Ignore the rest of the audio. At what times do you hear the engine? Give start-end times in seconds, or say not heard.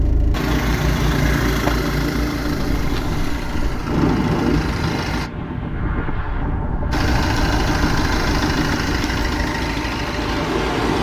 0.0-5.3, 6.9-10.9.